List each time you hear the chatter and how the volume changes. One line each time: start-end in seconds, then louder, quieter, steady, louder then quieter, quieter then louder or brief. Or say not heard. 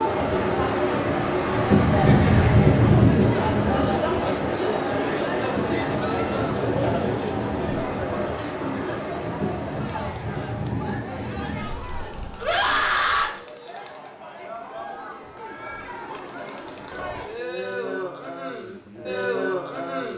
0.0-20.1 quieter then louder.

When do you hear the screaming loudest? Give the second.
13 s.